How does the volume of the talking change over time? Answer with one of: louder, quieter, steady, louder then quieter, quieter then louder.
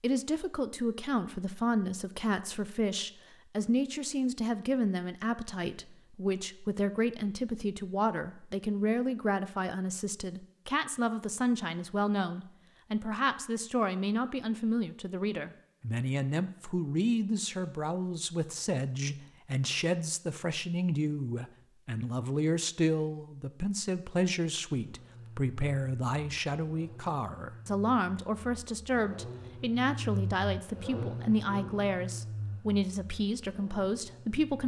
steady.